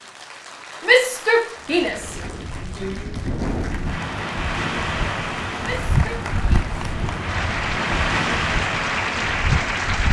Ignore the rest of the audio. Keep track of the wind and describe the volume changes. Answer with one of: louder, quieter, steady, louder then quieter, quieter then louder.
louder.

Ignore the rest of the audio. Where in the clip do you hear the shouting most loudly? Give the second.
1 s.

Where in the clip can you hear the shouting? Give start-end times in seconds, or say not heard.
0.8-3.1, 5.6-6.8.